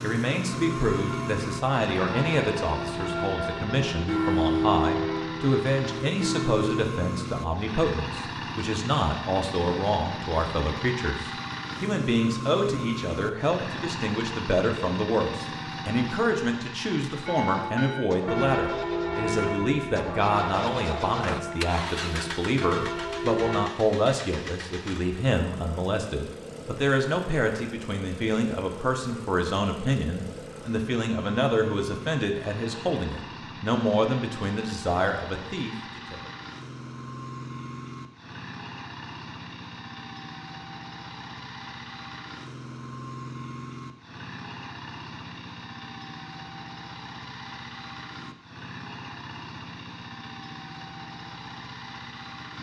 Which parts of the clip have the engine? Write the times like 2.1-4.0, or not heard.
0.0-52.5.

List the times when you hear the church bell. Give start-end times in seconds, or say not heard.
0.5-6.8, 17.2-23.6.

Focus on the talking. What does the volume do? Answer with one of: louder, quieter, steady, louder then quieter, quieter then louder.
steady.